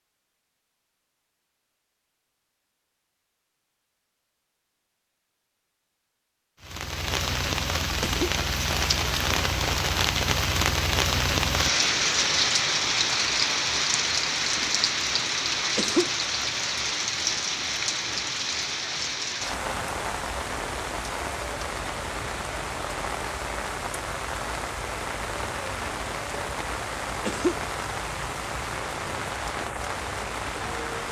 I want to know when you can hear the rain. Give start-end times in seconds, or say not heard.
6.6-31.0.